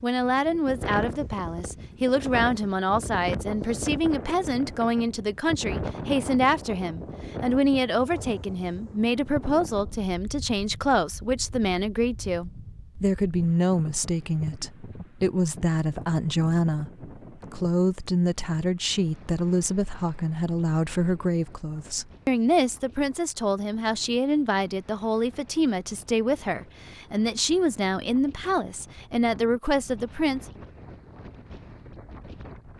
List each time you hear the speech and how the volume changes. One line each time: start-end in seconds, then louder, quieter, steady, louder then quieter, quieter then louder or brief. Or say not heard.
0.0-30.4 steady.